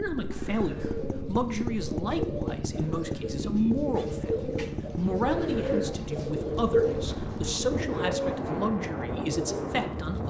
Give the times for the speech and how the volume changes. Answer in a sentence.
The speech can be heard from 0.0 to 10.2 s, at a steady volume.